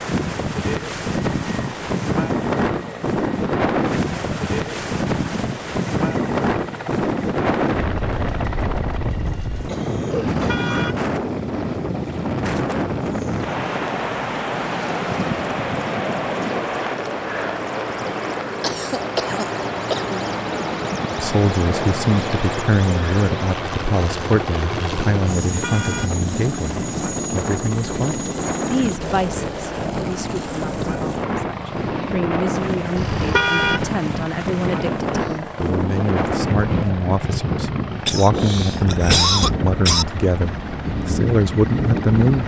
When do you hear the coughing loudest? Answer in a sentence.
The loudest moment of the coughing is at 39 seconds.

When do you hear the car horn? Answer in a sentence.
The car horn can be heard from 10.1 to 11.0 s, from 25.4 to 26.1 s and from 33.0 to 33.9 s.